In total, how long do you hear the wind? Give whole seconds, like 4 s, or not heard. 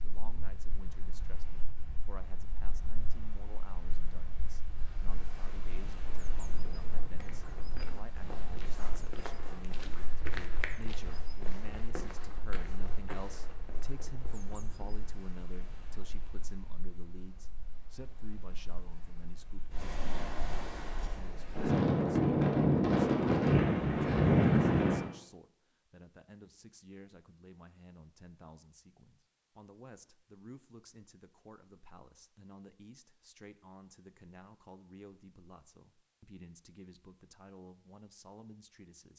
25 s.